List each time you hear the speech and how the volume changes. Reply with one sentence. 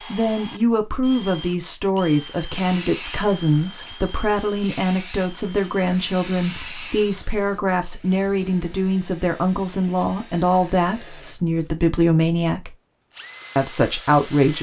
You can hear the speech from 0.1 to 12.8 s, at a steady volume; and briefly from 13.6 to 14.5 s.